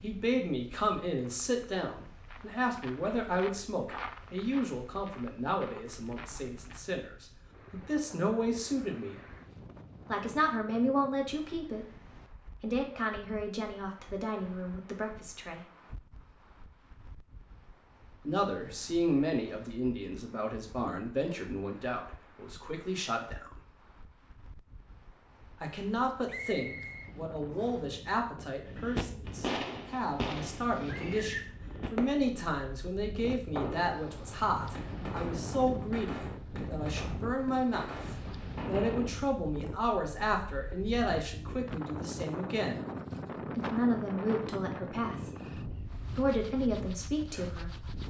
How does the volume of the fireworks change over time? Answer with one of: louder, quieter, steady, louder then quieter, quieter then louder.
quieter.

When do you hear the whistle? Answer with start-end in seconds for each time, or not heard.
26.2-27.9.